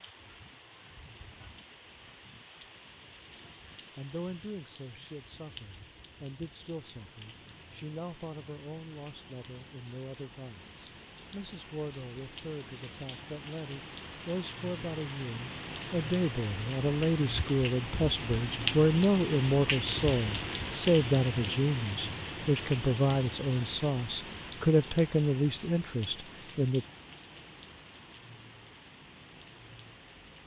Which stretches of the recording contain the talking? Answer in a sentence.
You can hear the talking from 3.8 to 26.9 s.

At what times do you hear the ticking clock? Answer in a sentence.
The ticking clock can't be heard in this clip.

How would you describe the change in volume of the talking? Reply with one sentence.
The loudness of the talking goes up.